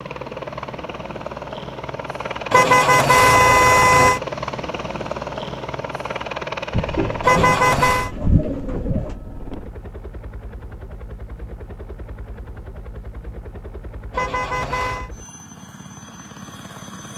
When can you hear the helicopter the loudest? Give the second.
4 s.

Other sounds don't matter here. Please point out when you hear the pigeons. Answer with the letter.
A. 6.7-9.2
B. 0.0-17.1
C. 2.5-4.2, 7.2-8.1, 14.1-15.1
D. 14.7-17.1
A.